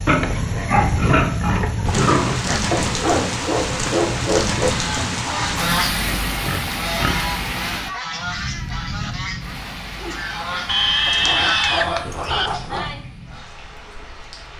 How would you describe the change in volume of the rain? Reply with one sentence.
The loudness of the rain goes down.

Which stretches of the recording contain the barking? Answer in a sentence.
The barking can be heard from 2.7 to 4.7 s and from 11.1 to 12.9 s.